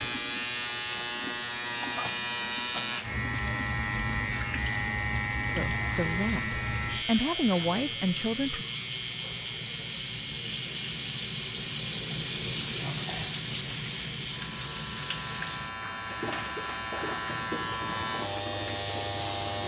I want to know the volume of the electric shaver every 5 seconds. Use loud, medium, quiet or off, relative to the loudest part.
loud, loud, medium, loud.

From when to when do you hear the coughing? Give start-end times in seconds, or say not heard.
1.8-3.0.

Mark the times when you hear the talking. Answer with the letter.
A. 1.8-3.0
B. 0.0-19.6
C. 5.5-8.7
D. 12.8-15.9
C.